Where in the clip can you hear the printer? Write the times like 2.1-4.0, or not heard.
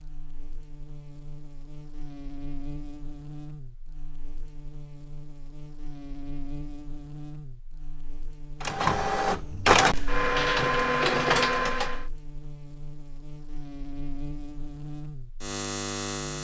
8.6-12.1.